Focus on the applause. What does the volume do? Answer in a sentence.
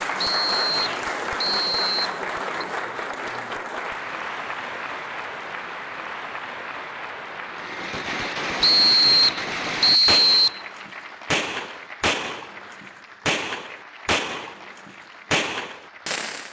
The volume of the applause goes down.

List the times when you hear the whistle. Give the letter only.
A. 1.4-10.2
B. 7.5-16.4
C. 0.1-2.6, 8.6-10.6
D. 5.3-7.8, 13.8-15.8
C.